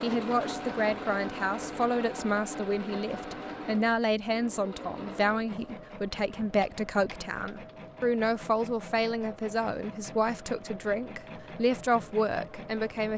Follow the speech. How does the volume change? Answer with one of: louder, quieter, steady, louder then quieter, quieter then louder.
steady.